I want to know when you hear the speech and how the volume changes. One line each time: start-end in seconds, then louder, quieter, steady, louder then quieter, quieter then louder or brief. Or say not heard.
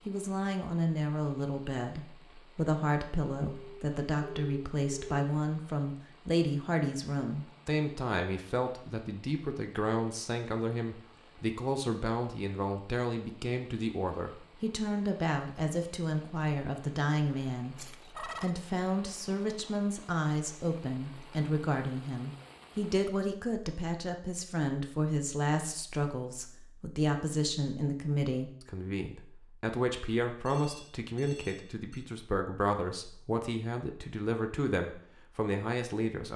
0.1-36.3 steady.